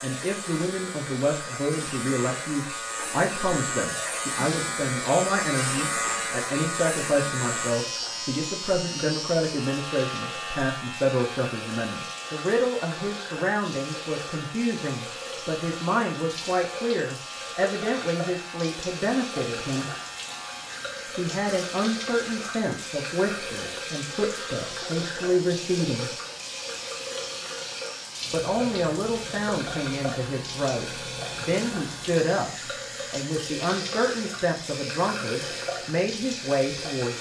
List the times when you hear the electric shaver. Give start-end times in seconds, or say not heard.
0.0-37.1.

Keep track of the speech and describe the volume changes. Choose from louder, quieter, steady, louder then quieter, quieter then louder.
steady.